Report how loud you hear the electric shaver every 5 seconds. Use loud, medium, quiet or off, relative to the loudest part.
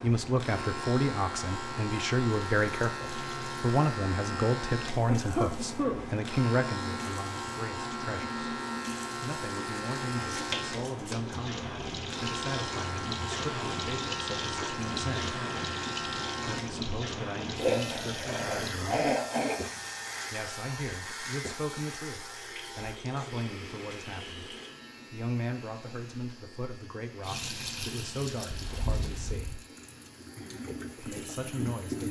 loud, loud, loud, loud, medium, quiet, quiet.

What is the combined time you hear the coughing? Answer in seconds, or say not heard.
3 s.